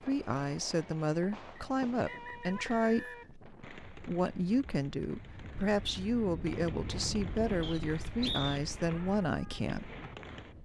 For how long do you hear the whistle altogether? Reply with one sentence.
The whistle can be heard for 3 seconds in total.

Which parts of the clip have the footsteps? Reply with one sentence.
You can't hear the footsteps here.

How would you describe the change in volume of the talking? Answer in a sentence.
The loudness of the talking stays about the same.